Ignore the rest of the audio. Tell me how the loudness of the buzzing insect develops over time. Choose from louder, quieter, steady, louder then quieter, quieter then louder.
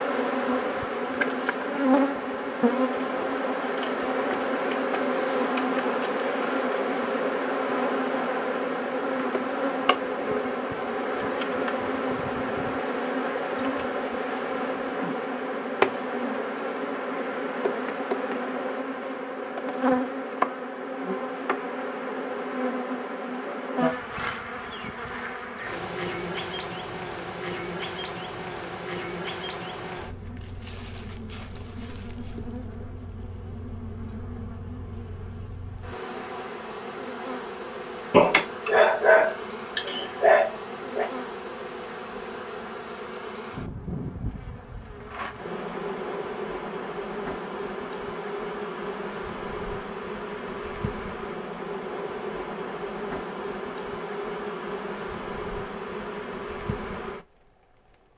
quieter.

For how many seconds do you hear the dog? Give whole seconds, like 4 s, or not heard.
3 s.